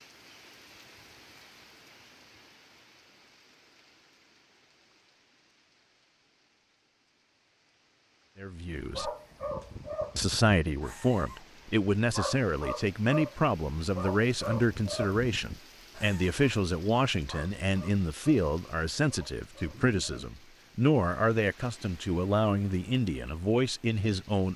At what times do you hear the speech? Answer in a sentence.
The speech can be heard from 8.4 to 9.1 s and from 10.2 to 24.5 s.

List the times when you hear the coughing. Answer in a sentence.
You can't hear the coughing here.